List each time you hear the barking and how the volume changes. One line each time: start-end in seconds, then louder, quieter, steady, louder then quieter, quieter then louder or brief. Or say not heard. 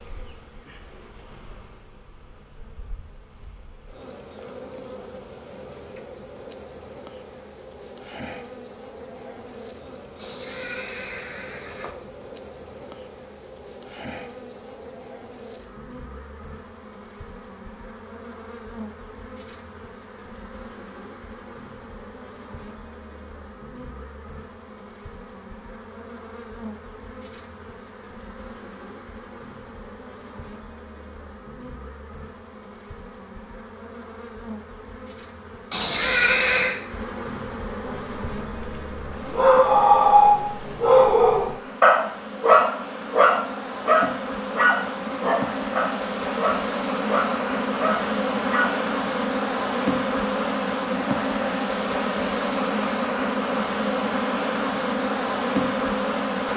37.8-48.8 quieter.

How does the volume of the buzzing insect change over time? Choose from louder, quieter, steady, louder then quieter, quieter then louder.
louder.